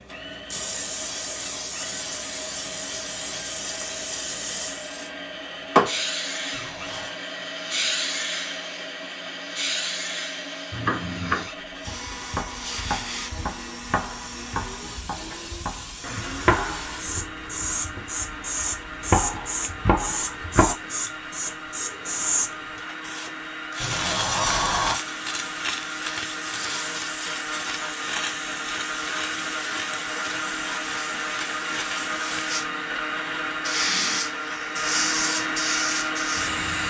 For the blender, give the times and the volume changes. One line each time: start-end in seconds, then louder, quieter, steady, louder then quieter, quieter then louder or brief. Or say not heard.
0.0-36.8 louder.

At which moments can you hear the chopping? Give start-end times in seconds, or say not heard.
10.7-20.8.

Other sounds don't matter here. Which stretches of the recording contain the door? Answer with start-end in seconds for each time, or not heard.
6.5-7.2, 23.8-25.0.